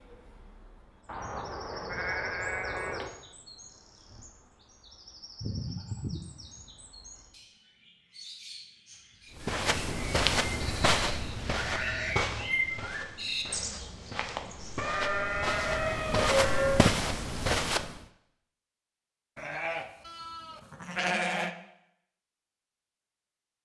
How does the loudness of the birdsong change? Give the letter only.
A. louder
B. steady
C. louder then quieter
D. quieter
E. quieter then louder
A.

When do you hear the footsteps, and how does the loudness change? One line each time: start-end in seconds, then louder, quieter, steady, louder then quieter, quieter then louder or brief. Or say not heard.
9.3-18.0 quieter then louder.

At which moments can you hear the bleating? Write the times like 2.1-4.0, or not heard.
1.1-3.1, 5.4-6.8, 10.6-12.3, 14.8-16.9, 19.4-21.5.